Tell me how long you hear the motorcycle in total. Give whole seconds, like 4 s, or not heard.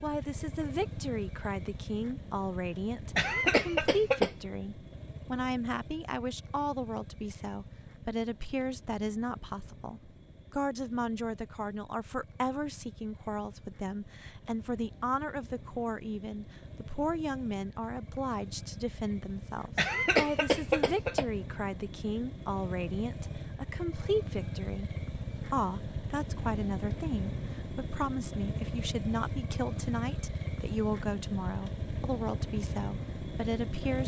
34 s.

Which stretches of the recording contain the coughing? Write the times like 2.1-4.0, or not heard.
3.1-4.3, 19.8-21.2.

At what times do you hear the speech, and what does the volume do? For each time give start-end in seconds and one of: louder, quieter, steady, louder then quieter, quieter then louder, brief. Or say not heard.
0.0-34.0 steady.